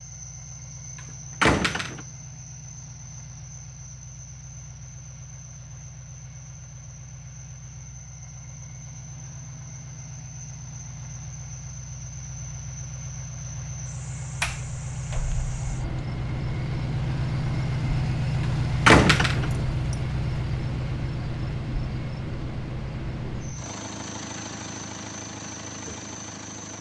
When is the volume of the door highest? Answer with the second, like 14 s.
19 s.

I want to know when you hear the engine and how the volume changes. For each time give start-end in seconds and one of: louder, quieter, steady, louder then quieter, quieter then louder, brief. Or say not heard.
0.0-26.7 louder then quieter.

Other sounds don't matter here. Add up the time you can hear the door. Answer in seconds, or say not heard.
4 s.